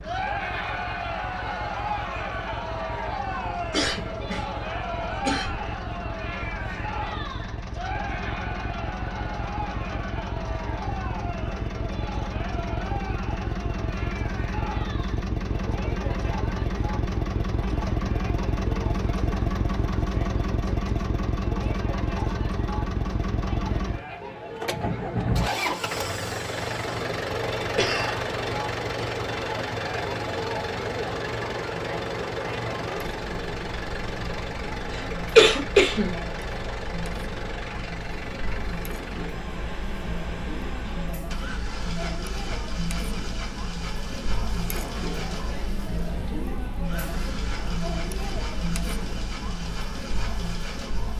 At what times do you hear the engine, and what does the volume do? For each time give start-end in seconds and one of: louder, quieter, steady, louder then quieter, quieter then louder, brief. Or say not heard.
0.0-51.1 louder then quieter.